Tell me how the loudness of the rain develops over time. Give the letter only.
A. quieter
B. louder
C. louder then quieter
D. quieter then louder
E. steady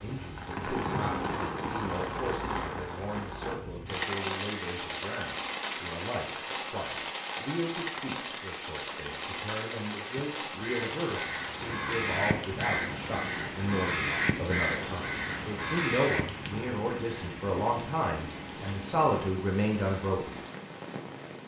A.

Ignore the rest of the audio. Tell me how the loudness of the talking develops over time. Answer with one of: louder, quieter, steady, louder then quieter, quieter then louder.
louder.